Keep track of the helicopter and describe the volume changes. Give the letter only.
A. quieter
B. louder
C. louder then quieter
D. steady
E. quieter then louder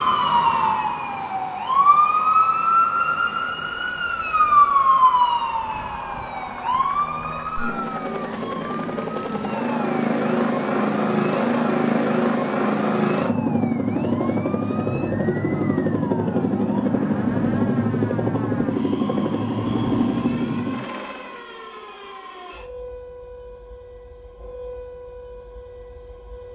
B.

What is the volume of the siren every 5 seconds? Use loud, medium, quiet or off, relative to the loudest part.
loud, medium, quiet, quiet, quiet, quiet.